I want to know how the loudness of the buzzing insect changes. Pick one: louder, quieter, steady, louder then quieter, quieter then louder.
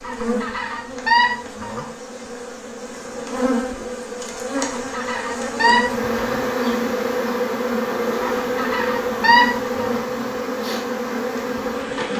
louder.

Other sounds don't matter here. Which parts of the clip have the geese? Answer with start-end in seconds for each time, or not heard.
0.0-1.9, 4.5-6.4, 8.2-10.0.